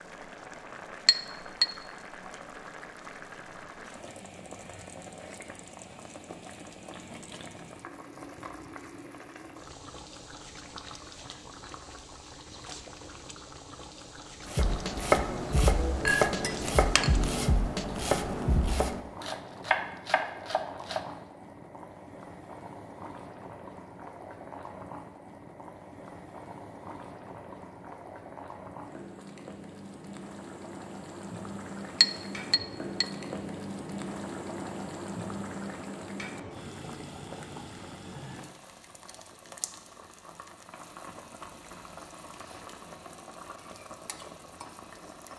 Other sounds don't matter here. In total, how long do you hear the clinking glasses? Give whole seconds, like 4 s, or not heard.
3 s.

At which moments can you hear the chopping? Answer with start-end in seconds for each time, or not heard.
14.4-21.1.